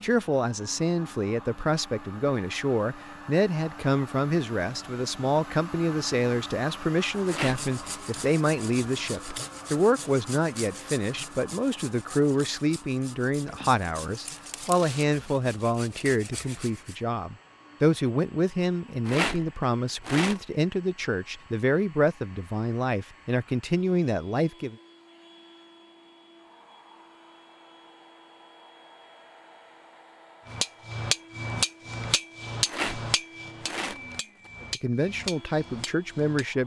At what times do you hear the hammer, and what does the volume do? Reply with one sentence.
You can hear the hammer from 30.4 to 36.5 s, getting quieter.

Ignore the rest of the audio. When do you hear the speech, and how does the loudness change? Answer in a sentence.
You can hear the speech from 0.0 to 24.8 s, at a steady volume; and briefly from 34.6 to 36.6 s.